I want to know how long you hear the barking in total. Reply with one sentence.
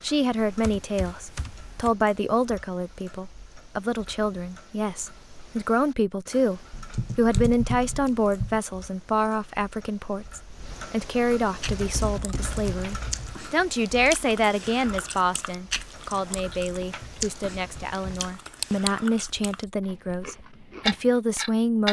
You can't hear the barking here.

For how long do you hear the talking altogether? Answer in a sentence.
You can hear the talking for 22 seconds altogether.